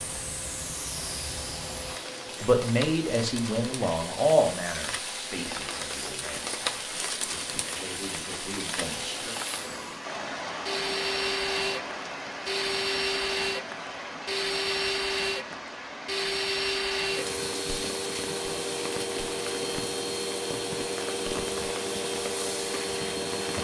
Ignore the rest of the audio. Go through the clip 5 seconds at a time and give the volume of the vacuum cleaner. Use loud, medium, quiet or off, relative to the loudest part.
medium, quiet, loud, loud, loud.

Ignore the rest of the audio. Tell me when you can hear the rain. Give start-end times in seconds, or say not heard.
0.0-23.5.